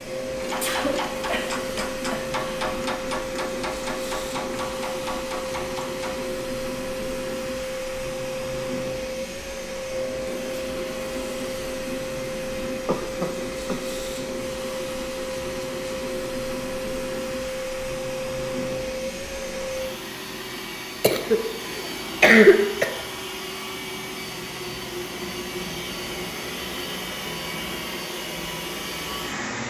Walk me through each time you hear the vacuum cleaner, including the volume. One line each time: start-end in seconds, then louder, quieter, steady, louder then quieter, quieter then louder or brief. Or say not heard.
0.0-29.6 steady.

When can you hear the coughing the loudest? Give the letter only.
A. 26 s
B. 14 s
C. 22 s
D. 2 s
C.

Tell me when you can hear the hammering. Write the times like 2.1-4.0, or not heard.
0.3-6.2.